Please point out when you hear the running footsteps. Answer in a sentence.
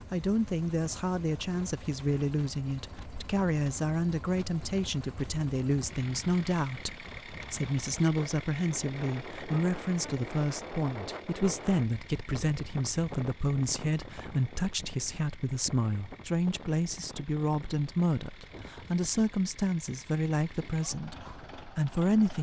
The running footsteps can't be heard in this clip.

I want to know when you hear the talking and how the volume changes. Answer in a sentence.
The talking can be heard from 0.1 to 22.3 s, at a steady volume.